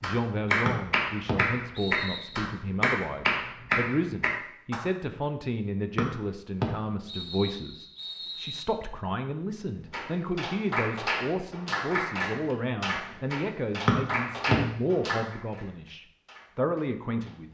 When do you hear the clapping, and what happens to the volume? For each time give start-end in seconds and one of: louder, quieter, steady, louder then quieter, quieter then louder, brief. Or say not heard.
0.0-4.8 quieter then louder
9.9-17.4 quieter.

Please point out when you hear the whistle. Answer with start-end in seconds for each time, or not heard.
0.7-2.4, 6.0-8.7, 13.8-14.6.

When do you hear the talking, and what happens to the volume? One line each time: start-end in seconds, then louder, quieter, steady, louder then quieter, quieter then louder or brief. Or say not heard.
0.0-17.4 steady.